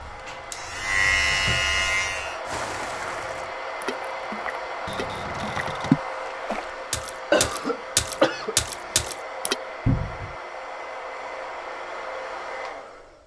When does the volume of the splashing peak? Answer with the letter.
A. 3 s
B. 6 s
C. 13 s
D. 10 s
B.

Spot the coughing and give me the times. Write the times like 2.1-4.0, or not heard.
7.3-9.1.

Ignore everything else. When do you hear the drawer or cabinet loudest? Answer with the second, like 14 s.
10 s.